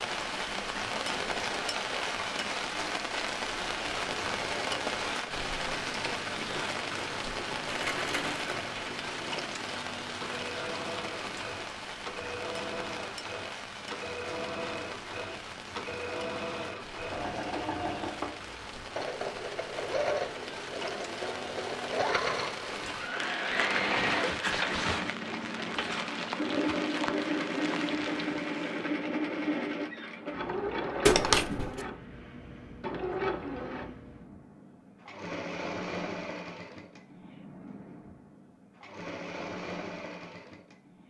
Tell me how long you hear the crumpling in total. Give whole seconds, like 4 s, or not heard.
3 s.